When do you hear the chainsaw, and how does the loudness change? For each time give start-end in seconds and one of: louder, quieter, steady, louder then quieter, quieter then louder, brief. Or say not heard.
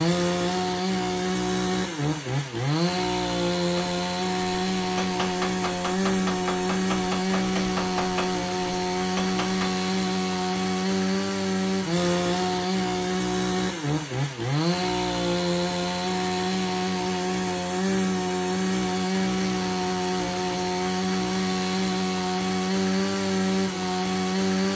0.0-24.7 steady.